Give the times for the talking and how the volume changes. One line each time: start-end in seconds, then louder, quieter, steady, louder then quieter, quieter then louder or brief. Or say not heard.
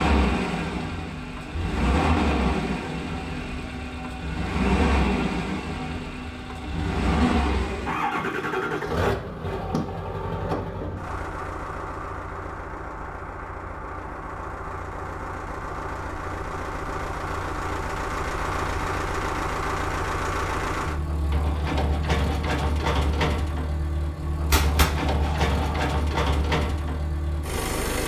not heard.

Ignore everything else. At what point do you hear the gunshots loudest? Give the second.
25 s.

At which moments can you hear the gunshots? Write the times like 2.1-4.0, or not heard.
24.5-25.9.